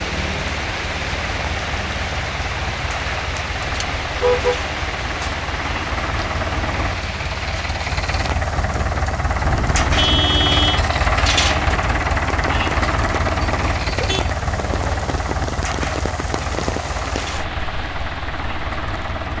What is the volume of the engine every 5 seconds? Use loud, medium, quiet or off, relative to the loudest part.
medium, loud, loud, medium.